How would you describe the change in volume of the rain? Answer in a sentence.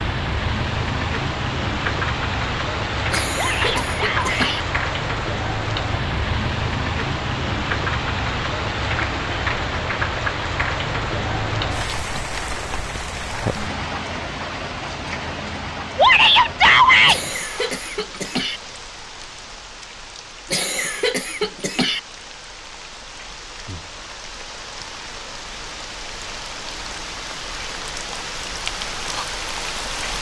The volume of the rain goes down, then up.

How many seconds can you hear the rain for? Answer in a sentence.
The rain can be heard for 30 seconds in total.